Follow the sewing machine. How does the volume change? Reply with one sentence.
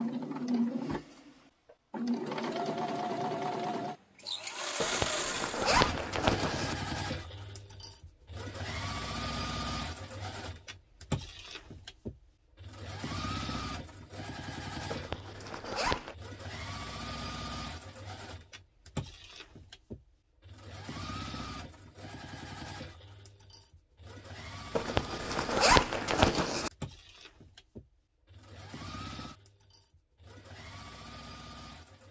The loudness of the sewing machine goes down.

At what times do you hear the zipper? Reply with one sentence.
You can hear the zipper from 4.8 to 6.8 s, from 14.9 to 16.1 s and from 24.8 to 26.7 s.